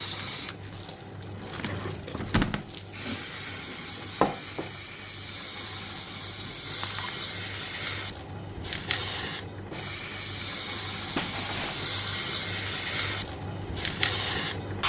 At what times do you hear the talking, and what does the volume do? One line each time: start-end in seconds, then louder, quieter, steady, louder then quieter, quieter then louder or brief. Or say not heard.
not heard.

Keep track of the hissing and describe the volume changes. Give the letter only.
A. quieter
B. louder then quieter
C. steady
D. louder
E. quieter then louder
D.